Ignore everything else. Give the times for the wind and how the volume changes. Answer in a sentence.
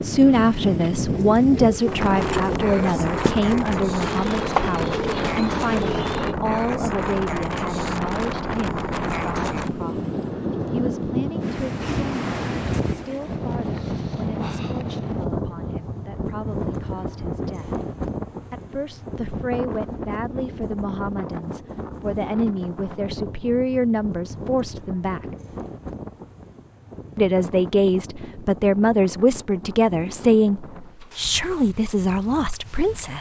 The wind can be heard from 0.0 to 33.1 s, getting quieter.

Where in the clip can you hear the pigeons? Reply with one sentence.
You can hear the pigeons from 0.3 to 6.3 s.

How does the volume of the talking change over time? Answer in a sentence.
The volume of the talking goes down, then up.